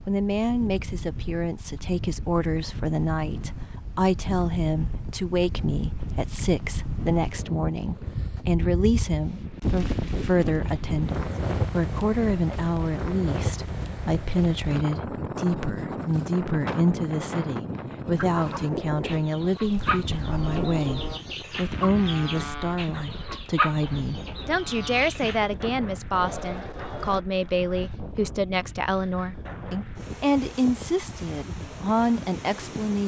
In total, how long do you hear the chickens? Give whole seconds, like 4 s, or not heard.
7 s.